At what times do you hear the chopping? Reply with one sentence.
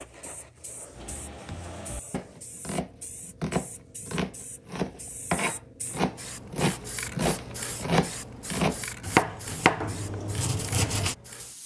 You can hear the chopping from 0.9 to 11.2 s.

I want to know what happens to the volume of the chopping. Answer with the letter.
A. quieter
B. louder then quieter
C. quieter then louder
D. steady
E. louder
E.